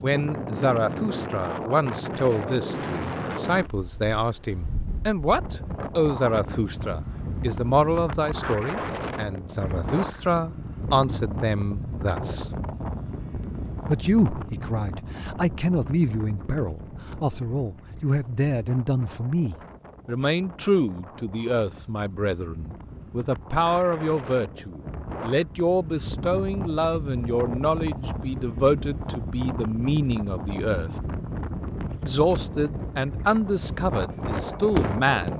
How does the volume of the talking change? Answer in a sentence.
The loudness of the talking stays about the same.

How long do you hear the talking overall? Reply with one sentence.
The talking can be heard for 33 seconds in total.